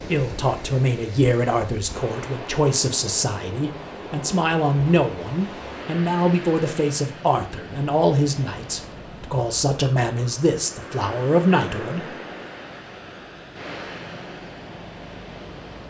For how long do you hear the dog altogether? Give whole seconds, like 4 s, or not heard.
not heard.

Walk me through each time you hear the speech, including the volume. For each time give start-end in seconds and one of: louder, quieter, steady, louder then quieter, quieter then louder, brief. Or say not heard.
0.1-12.2 steady.